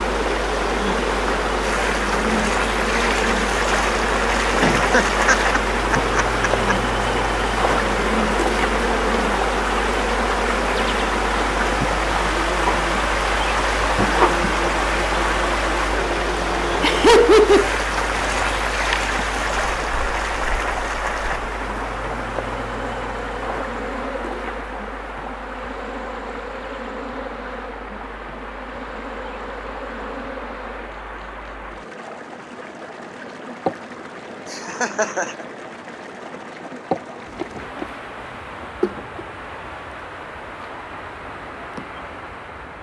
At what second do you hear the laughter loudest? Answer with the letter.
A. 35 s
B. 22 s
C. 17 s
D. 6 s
C.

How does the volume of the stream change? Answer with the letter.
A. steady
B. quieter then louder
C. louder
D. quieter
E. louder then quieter
D.